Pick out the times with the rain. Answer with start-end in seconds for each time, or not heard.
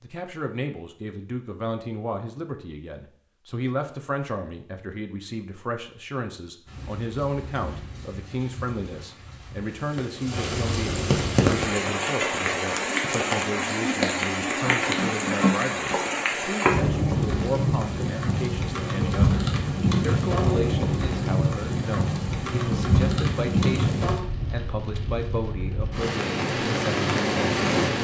6.7-27.9.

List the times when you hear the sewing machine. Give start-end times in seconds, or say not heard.
not heard.